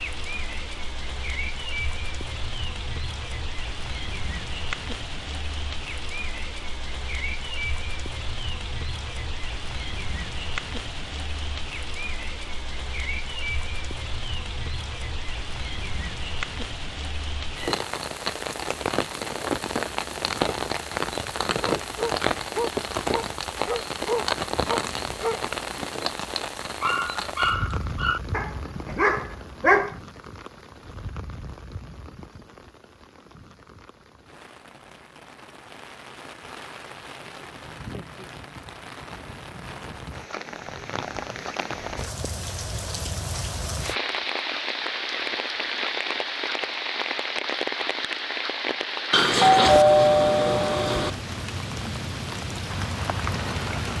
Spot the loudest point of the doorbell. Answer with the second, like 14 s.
50 s.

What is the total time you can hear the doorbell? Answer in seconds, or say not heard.
2 s.